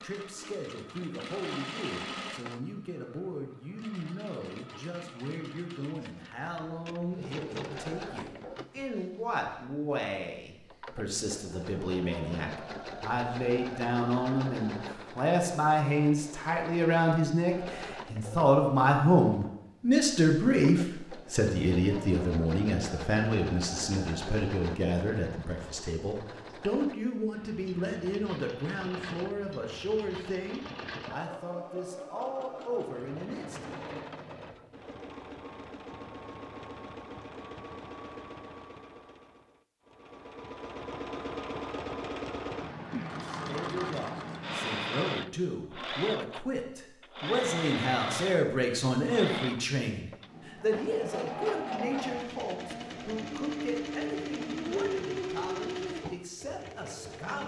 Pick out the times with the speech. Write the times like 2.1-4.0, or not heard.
0.0-33.7, 43.2-57.4.